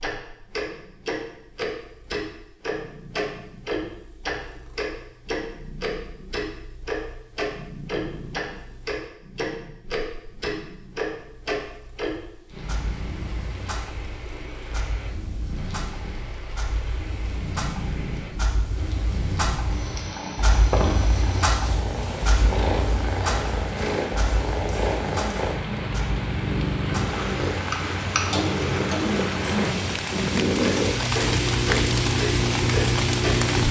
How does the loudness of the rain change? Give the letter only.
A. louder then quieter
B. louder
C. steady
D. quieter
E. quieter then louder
B.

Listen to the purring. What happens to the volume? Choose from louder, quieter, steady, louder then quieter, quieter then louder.
louder.